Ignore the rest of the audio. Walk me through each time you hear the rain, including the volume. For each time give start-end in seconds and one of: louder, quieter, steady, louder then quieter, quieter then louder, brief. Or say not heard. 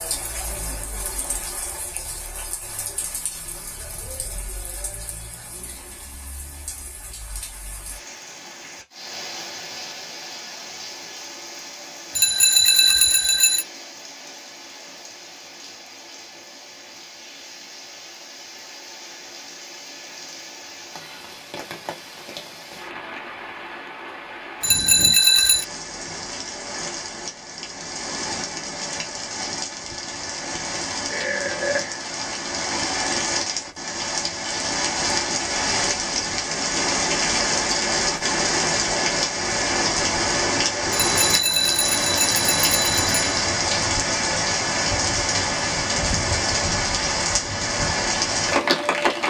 0.0-49.2 louder.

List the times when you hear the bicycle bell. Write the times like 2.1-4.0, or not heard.
12.2-13.7, 24.6-25.6, 40.9-43.4.